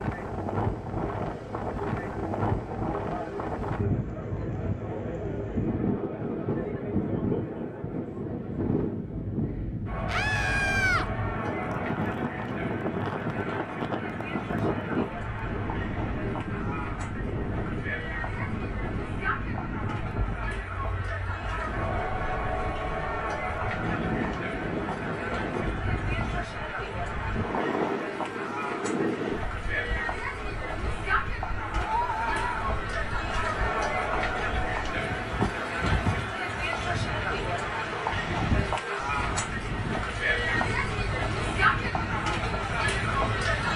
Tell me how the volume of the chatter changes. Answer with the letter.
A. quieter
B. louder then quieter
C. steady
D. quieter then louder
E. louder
E.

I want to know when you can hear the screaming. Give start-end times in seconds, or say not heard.
10.1-11.1, 31.8-32.9.